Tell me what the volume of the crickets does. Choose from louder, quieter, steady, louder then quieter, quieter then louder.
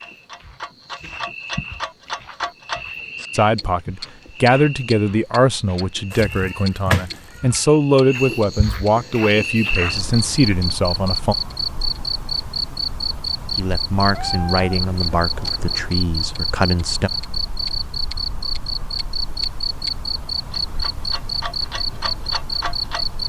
louder.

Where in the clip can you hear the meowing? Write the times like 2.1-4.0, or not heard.
6.1-7.7, 13.9-15.9.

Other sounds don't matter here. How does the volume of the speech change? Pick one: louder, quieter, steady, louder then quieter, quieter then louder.
quieter.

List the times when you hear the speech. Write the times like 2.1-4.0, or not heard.
3.3-11.3, 13.6-17.1.